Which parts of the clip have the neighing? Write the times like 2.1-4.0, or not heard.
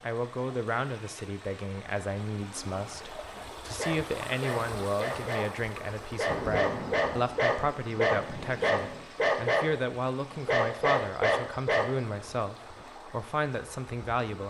not heard.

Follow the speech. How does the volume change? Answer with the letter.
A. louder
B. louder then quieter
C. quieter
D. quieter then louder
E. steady
E.